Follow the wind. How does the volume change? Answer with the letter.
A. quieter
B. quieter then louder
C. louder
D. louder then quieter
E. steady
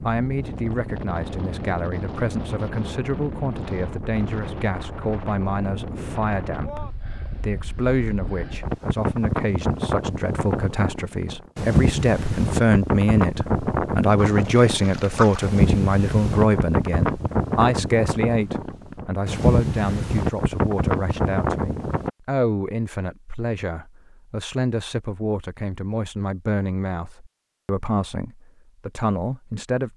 C.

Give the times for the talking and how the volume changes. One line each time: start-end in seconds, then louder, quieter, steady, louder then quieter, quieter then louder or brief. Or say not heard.
0.0-29.9 louder then quieter.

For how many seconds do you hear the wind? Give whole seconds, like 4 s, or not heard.
22 s.